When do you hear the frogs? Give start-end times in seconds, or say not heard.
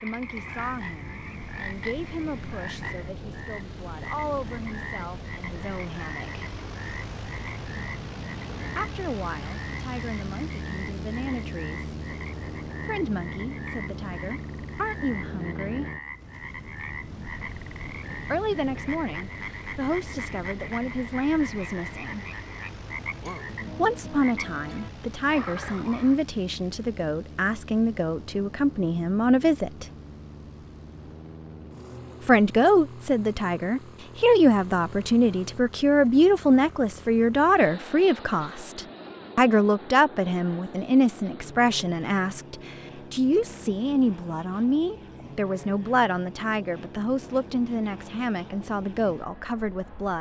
0.0-26.2.